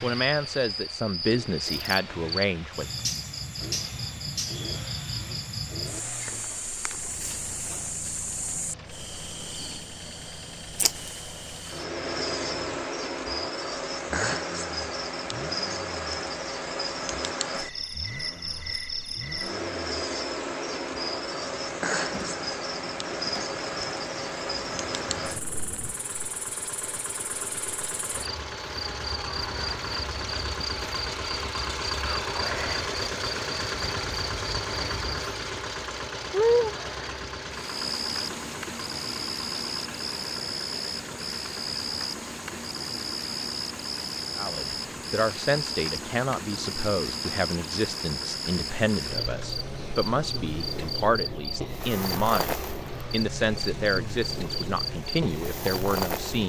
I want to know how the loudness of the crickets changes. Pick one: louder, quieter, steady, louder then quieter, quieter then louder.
steady.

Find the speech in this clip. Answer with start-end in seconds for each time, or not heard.
0.0-2.9, 44.4-56.4.